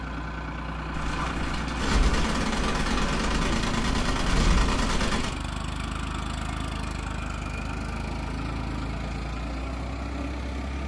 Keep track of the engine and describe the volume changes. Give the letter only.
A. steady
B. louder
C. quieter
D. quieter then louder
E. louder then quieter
A.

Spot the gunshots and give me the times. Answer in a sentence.
The gunshots can be heard from 0.9 to 5.3 s.